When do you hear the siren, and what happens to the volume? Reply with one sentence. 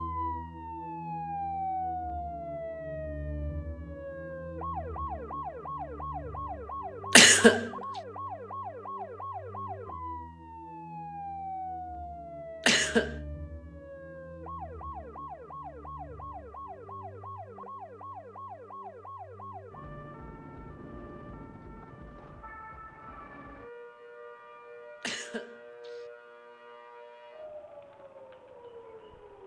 You can hear the siren from 0.0 to 29.4 s, getting quieter.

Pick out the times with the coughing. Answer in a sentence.
You can hear the coughing from 7.2 to 7.7 s, from 12.7 to 13.2 s and from 25.0 to 25.9 s.